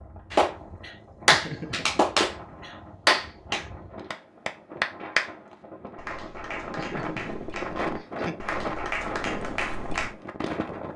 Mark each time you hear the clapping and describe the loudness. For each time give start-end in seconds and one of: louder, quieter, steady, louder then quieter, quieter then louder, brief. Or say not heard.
0.3-10.2 quieter then louder.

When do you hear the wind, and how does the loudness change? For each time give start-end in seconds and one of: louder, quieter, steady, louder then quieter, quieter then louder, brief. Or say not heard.
0.0-10.9 louder.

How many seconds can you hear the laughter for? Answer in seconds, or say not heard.
2 s.